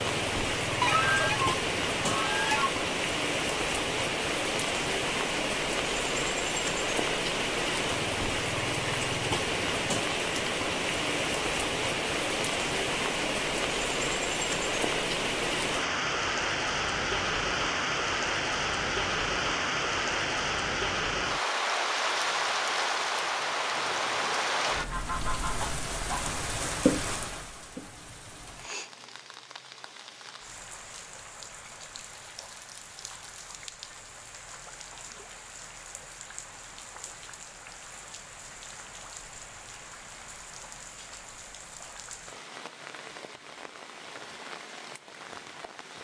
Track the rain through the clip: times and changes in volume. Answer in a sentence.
You can hear the rain from 0.0 to 46.0 s, getting quieter.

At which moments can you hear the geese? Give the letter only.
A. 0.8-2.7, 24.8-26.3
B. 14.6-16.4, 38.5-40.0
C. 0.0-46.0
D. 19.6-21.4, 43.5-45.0
A.